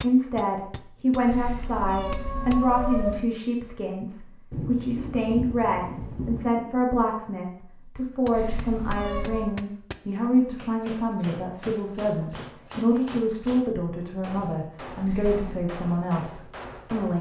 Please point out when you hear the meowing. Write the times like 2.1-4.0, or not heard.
1.2-3.2, 8.3-9.6, 15.1-15.7.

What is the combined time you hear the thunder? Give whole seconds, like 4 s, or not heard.
2 s.